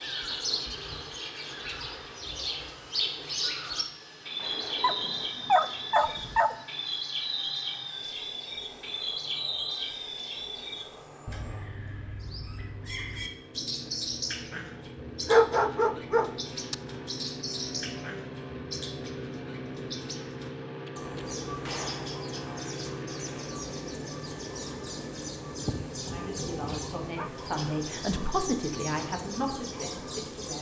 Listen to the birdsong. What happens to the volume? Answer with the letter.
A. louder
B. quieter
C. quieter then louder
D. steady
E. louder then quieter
B.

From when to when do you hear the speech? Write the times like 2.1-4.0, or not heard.
25.9-30.5.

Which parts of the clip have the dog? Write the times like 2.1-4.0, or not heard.
4.8-6.5, 15.2-16.8, 25.6-27.3.